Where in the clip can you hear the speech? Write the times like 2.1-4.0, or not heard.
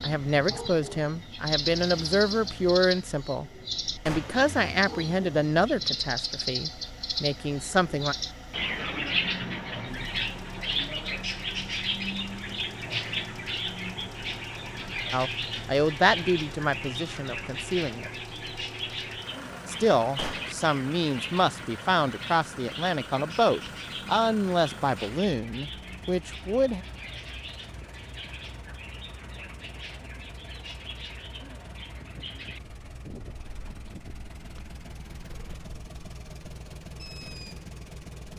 0.0-8.2, 15.1-18.1, 19.6-26.9.